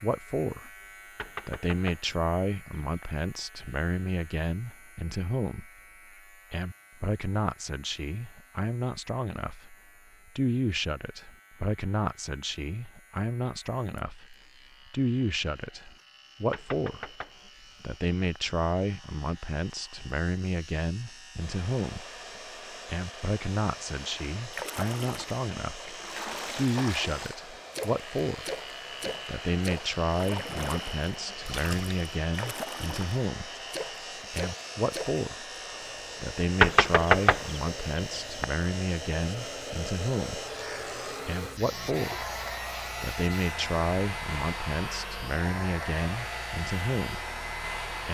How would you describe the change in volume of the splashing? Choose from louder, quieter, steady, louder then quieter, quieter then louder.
steady.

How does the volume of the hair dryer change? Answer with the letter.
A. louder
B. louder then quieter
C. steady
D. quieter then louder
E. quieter
A.